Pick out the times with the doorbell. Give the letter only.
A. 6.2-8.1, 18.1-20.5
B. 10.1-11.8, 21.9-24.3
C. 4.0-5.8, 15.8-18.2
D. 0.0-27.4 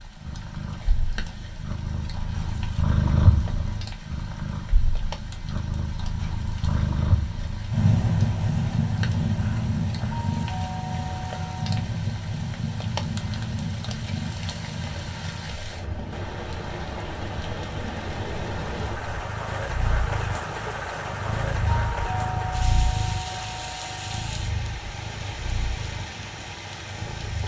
B.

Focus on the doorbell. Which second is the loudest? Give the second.
22 s.